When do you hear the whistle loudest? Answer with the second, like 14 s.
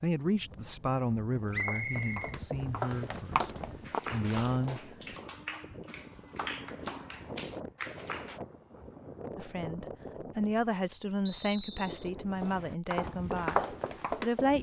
2 s.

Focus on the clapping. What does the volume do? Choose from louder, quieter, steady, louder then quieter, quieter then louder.
steady.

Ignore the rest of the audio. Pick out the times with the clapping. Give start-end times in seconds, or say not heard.
3.9-8.4.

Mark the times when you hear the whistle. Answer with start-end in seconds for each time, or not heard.
1.5-3.1, 11.2-12.1.